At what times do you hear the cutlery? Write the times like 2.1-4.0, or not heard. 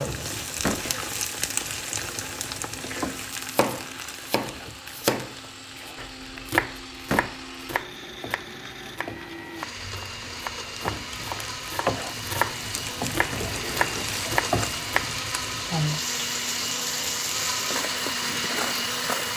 not heard.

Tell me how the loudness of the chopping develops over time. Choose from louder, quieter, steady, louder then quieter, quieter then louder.
quieter then louder.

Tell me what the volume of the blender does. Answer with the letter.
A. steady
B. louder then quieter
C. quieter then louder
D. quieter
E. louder
E.